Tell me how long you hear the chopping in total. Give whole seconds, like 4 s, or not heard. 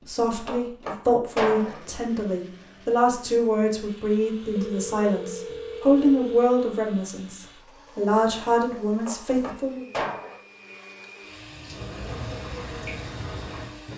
3 s.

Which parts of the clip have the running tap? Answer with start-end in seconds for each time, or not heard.
11.5-13.9.